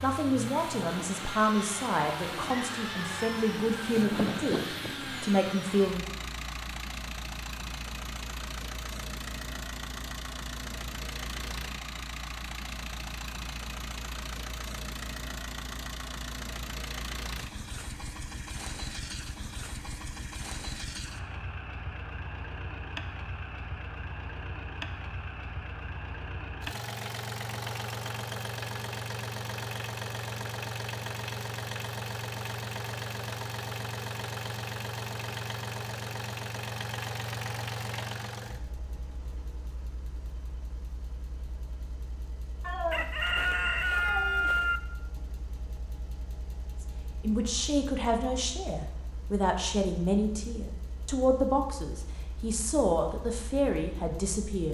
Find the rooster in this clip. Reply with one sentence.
The rooster can be heard from 2.3 to 5.2 s and from 42.9 to 44.8 s.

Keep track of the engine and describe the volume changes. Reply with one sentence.
The loudness of the engine goes down.